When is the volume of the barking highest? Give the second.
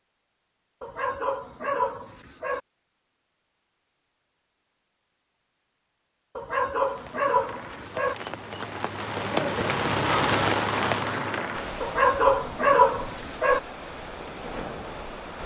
13 s.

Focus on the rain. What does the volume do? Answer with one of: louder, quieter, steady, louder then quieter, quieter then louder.
louder then quieter.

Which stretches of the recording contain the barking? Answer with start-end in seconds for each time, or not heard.
0.8-2.6, 6.3-8.2, 11.8-13.6.